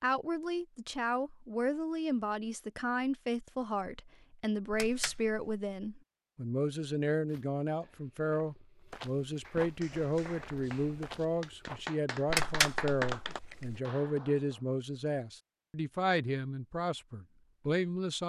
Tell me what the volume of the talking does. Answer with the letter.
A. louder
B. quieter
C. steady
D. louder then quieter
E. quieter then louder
C.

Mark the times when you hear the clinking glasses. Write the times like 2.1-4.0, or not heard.
4.7-5.4, 12.3-13.8.